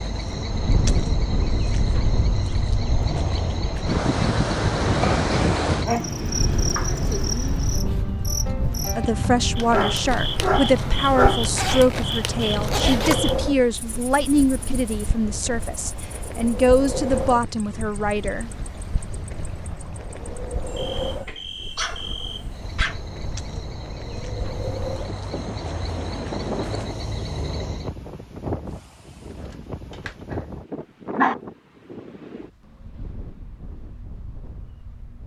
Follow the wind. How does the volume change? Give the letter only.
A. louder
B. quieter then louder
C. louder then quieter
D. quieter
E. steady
D.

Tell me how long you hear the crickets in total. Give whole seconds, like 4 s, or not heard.
28 s.